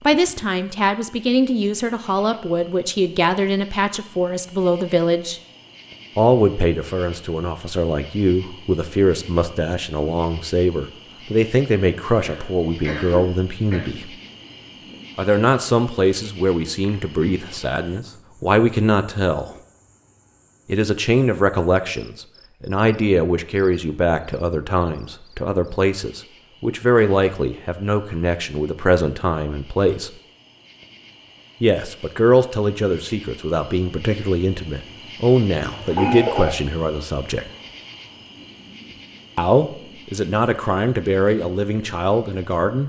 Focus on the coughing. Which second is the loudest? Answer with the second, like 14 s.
36 s.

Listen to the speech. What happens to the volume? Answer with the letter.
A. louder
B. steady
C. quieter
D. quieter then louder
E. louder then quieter
B.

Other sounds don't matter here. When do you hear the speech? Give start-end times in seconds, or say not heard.
0.0-5.4, 6.2-14.2, 15.2-19.6, 20.6-30.1, 31.6-37.5, 39.4-42.8.